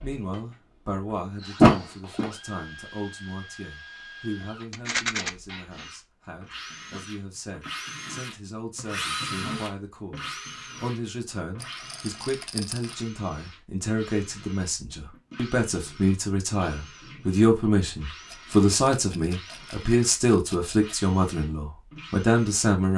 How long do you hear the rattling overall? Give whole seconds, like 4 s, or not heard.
5 s.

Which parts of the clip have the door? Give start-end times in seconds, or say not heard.
1.6-2.3.